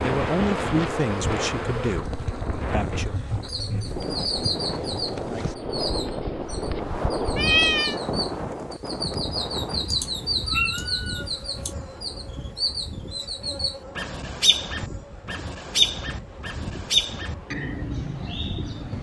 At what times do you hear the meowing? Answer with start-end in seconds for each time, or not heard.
7.3-8.0, 9.9-11.7.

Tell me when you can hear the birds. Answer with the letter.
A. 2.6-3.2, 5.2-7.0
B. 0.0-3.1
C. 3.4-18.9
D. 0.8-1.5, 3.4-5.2
C.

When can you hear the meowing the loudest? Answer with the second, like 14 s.
8 s.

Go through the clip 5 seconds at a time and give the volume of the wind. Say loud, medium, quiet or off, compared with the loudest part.
loud, loud, medium, medium.